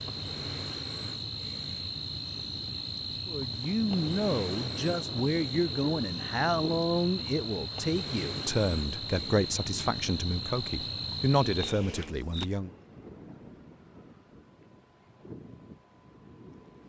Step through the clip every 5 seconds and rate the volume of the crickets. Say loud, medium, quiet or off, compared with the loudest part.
loud, loud, loud, off.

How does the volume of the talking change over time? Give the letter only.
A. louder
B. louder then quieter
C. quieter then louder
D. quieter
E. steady
E.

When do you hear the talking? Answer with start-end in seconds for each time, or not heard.
3.2-12.7.